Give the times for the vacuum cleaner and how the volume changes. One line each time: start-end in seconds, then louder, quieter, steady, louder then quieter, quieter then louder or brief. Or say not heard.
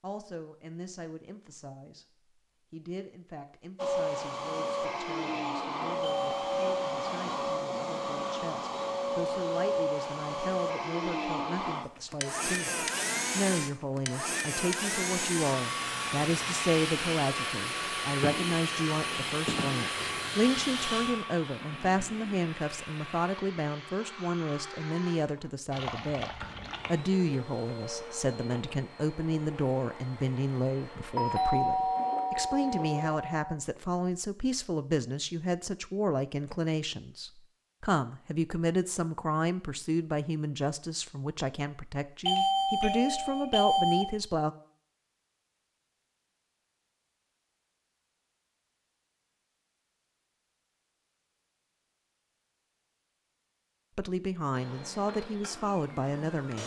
3.8-33.2 quieter
54.5-56.6 brief.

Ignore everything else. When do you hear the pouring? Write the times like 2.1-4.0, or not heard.
25.7-26.9.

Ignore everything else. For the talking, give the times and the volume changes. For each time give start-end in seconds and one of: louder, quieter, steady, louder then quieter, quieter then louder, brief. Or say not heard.
0.0-2.0 brief
2.7-44.5 louder
54.0-56.6 brief.